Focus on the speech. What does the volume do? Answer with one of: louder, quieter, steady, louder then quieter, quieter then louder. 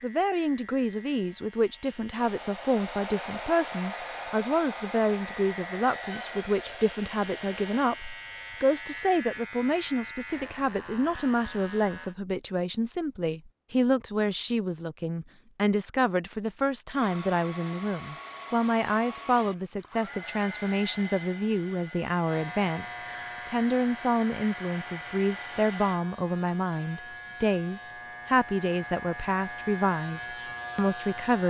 steady.